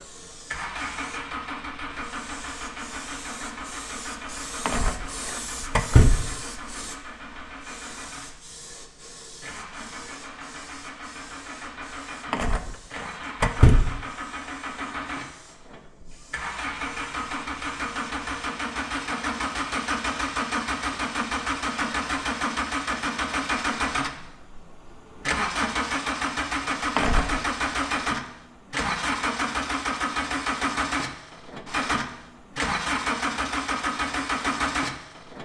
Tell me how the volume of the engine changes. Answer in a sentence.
The loudness of the engine goes up.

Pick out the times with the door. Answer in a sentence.
The door can be heard from 4.7 to 6.2 s, from 12.3 to 13.8 s and from 26.9 to 27.4 s.